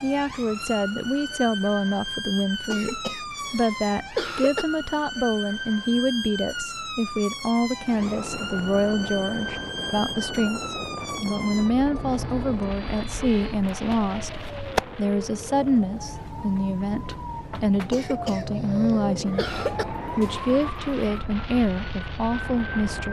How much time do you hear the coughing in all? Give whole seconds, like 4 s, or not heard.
4 s.